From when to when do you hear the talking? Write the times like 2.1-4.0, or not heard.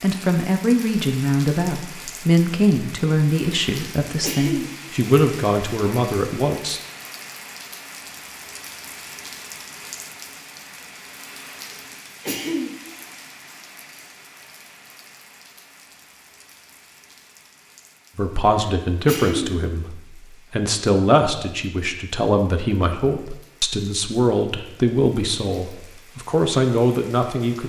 0.0-6.8, 18.1-27.6.